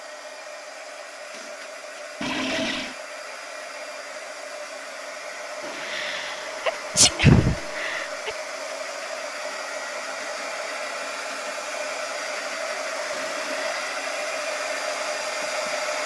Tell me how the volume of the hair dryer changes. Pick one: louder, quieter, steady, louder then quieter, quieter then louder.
louder.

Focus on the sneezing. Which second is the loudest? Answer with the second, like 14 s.
7 s.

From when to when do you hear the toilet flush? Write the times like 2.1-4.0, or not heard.
2.2-3.0, 5.6-8.1, 13.1-13.9.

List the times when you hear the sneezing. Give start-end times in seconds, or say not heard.
5.8-8.3.